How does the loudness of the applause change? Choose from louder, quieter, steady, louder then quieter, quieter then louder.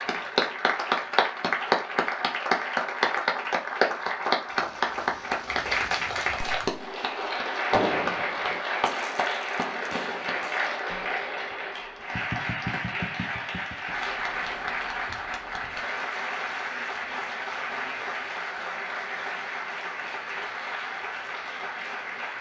quieter.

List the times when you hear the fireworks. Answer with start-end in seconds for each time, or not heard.
4.3-10.7.